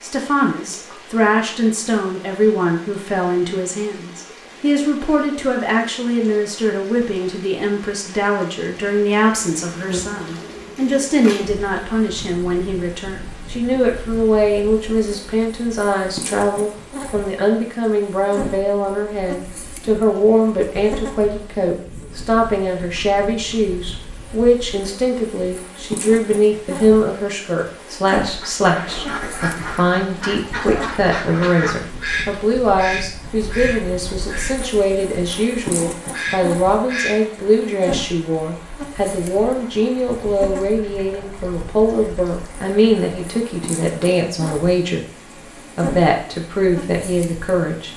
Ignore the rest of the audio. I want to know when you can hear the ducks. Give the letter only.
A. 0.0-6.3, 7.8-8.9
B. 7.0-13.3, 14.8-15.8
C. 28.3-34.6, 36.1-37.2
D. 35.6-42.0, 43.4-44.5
C.